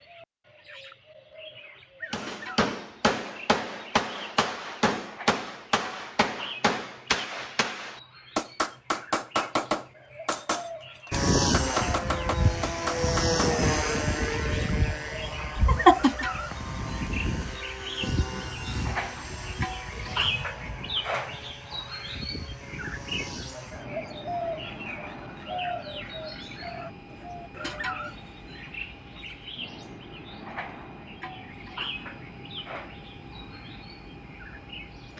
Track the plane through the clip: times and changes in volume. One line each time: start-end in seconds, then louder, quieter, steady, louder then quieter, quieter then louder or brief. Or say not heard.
11.1-35.1 quieter.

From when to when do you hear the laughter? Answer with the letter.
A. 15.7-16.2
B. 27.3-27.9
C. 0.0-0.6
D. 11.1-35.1
A.